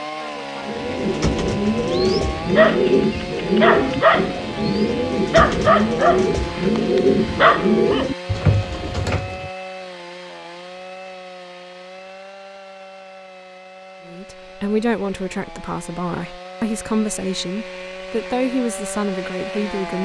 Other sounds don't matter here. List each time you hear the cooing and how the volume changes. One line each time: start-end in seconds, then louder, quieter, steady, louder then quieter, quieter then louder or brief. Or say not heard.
0.6-9.5 steady.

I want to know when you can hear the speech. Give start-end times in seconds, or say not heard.
14.1-20.0.